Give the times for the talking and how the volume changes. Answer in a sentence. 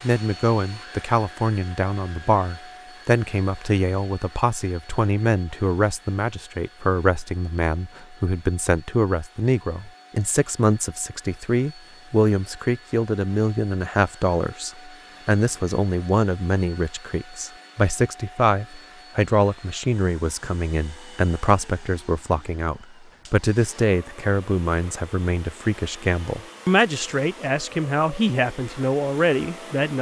The talking can be heard from 0.0 to 29.9 s, at a steady volume.